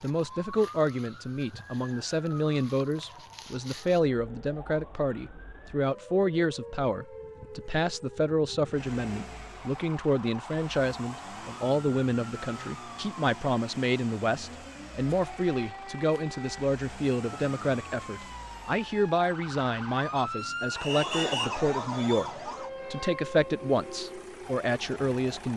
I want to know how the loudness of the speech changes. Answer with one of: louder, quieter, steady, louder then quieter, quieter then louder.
steady.